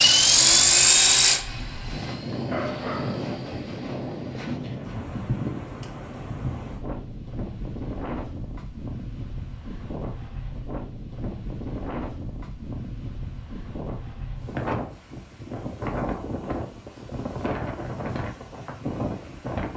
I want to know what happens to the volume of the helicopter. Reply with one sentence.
The volume of the helicopter goes down.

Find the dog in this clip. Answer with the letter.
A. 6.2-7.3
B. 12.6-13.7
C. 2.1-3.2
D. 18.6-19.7
C.